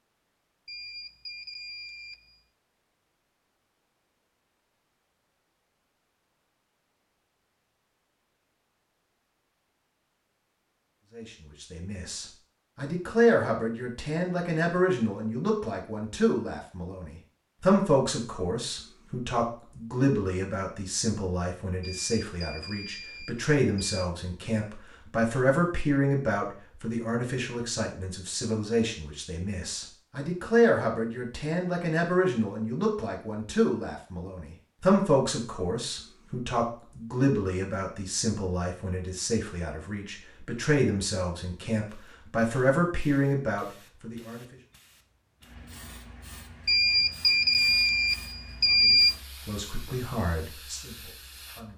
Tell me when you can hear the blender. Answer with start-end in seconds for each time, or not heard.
not heard.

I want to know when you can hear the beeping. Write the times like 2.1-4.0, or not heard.
0.7-2.4, 21.8-24.1, 46.6-49.1.